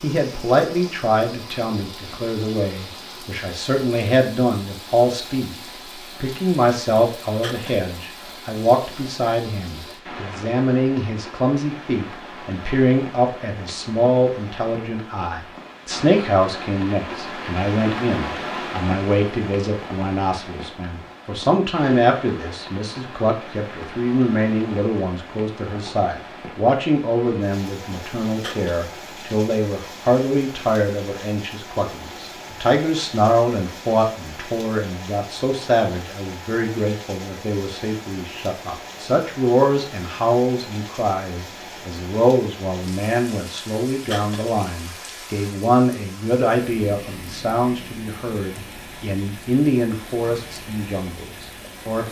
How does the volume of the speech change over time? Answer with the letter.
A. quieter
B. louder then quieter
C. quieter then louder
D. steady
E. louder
D.